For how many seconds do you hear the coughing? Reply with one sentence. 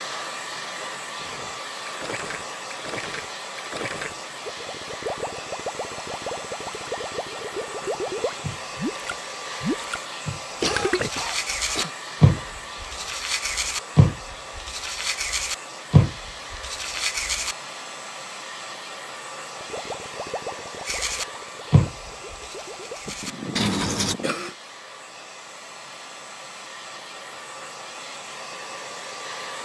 You can hear the coughing for 3 seconds altogether.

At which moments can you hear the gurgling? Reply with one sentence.
You can hear the gurgling from 1.2 to 11.1 s and from 19.6 to 23.0 s.